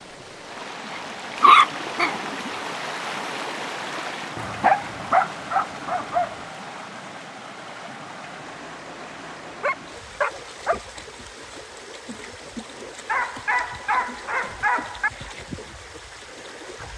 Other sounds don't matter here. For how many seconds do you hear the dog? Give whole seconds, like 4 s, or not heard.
7 s.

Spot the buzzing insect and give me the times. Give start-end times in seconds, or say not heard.
not heard.